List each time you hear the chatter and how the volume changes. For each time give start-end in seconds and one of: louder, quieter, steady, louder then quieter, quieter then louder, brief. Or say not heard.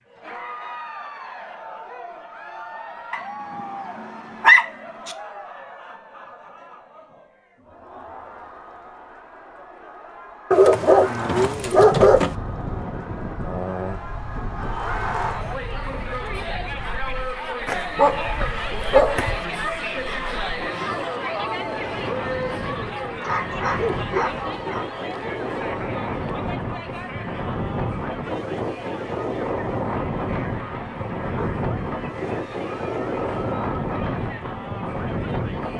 0.1-35.7 louder then quieter.